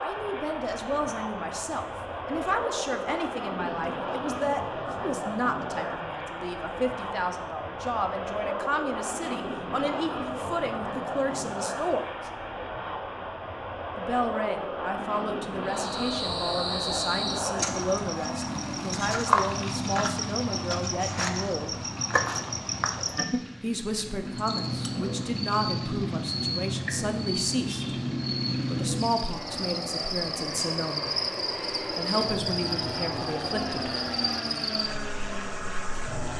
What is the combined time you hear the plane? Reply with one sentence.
The plane can be heard for 36 seconds in total.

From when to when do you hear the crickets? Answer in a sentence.
The crickets can be heard from 15.7 to 36.3 s.